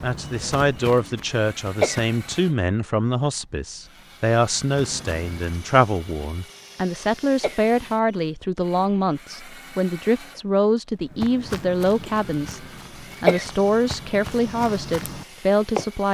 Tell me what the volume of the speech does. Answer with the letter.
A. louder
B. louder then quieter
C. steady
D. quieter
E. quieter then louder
C.